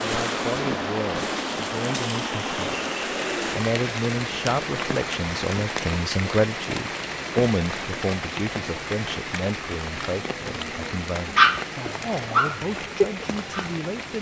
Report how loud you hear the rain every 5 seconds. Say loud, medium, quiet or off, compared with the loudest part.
loud, loud, medium.